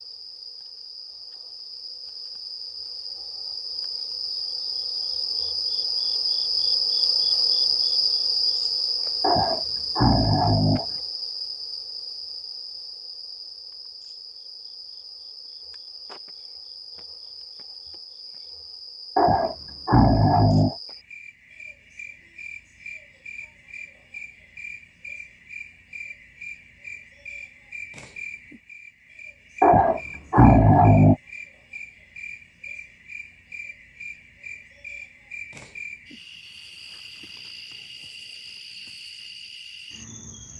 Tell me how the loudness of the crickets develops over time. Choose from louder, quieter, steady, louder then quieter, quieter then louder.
quieter.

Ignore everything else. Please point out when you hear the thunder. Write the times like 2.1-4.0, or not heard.
not heard.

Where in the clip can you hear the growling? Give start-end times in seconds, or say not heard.
9.2-10.8, 19.1-20.8, 29.6-31.1.